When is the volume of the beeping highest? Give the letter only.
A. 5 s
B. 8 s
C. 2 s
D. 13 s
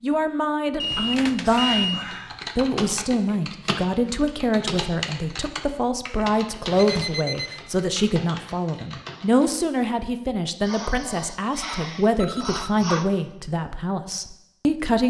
C.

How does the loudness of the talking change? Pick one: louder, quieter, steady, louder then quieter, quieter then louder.
steady.